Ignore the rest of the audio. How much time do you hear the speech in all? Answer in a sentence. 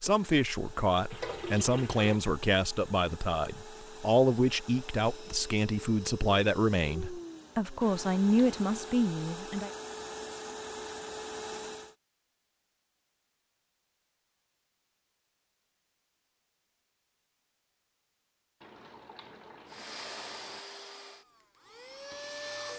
You can hear the speech for 10 seconds altogether.